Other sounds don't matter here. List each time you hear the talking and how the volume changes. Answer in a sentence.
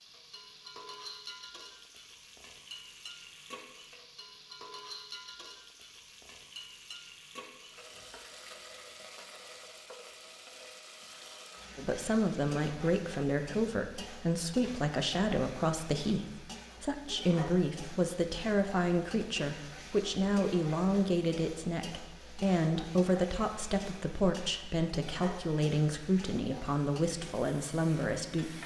The talking can be heard from 11.8 to 28.6 s, at a steady volume.